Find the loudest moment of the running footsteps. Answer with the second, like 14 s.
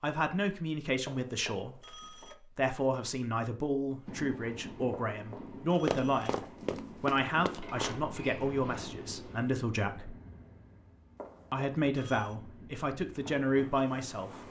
6 s.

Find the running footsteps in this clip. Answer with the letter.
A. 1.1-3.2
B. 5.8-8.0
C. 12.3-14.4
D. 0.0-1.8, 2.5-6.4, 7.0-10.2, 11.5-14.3
B.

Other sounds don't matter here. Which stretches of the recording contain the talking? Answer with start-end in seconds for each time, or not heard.
0.0-1.8, 2.5-6.4, 7.0-10.2, 11.5-14.3.